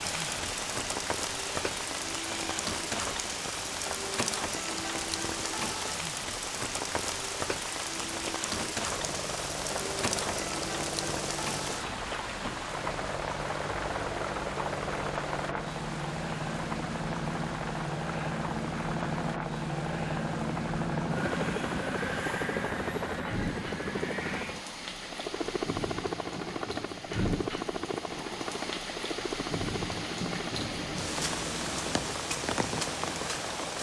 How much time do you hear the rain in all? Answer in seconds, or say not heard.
34 s.